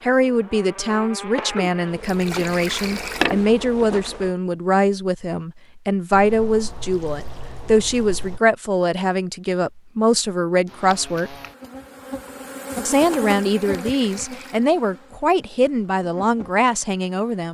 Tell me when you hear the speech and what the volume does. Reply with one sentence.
The speech can be heard from 0.0 to 11.3 s, at a steady volume; and from 12.8 to 17.4 s, at a steady volume.